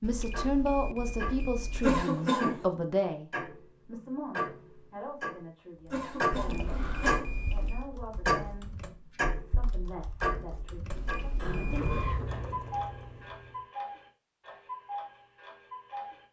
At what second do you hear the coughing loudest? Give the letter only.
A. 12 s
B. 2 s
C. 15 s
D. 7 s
B.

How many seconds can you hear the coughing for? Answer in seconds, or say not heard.
3 s.